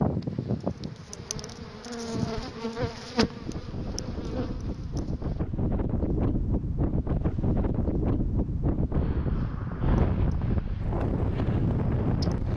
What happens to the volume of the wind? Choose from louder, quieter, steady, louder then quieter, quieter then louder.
louder.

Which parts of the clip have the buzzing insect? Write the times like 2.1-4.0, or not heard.
0.0-5.5, 9.2-12.4.